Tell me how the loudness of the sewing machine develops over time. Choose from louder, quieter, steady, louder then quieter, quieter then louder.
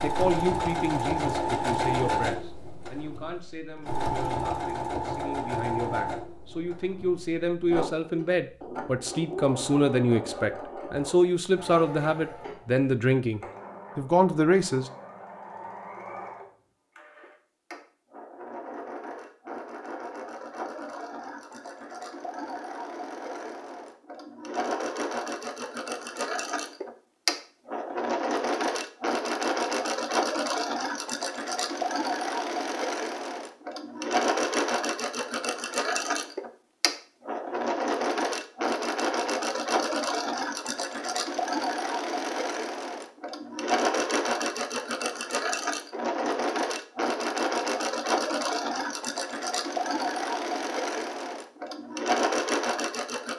quieter then louder.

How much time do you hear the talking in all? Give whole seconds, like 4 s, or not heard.
15 s.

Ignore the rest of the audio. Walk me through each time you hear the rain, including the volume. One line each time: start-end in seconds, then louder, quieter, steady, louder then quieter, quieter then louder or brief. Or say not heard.
not heard.